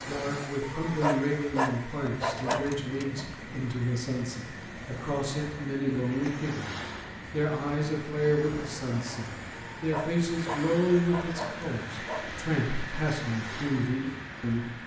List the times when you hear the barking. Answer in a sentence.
You can hear the barking from 0.6 to 3.2 s and from 9.5 to 12.2 s.